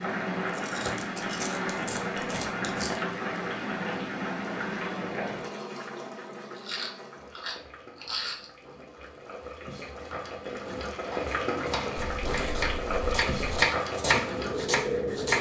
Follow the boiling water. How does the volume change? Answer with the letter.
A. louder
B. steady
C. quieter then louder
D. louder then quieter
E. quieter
C.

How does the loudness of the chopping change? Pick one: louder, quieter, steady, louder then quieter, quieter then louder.
louder then quieter.